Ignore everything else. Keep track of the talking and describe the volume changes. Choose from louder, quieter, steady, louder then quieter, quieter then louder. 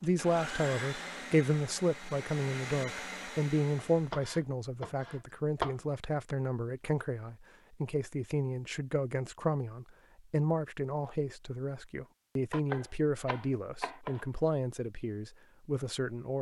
steady.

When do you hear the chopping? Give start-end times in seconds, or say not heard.
4.0-5.8, 12.5-14.2.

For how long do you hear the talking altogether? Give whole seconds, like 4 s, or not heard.
16 s.